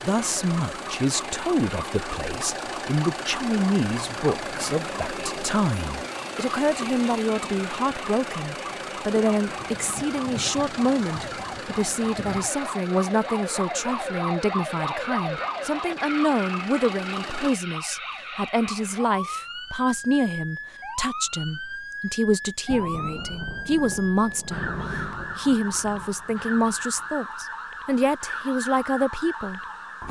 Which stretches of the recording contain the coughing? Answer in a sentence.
You can't hear the coughing here.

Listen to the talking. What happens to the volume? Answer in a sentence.
The loudness of the talking stays about the same.